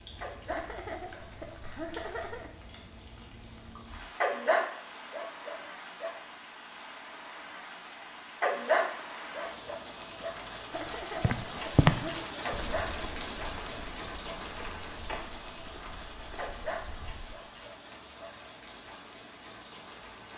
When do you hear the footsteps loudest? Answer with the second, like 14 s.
12 s.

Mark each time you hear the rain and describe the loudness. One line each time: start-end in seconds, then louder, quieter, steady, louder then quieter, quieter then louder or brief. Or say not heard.
0.0-20.3 louder then quieter.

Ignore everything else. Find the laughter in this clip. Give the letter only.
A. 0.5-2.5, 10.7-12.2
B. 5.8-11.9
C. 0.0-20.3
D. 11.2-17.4
A.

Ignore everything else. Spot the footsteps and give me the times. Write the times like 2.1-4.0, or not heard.
11.2-17.4.